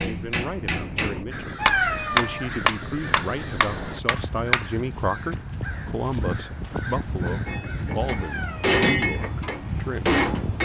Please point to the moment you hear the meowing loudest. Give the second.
2 s.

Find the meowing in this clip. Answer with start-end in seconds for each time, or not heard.
1.6-2.6, 8.2-8.8.